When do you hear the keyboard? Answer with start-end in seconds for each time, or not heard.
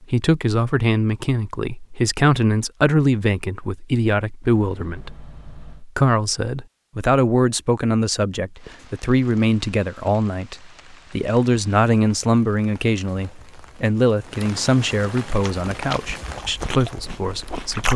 not heard.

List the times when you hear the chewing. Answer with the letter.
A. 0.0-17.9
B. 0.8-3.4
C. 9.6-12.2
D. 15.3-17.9
D.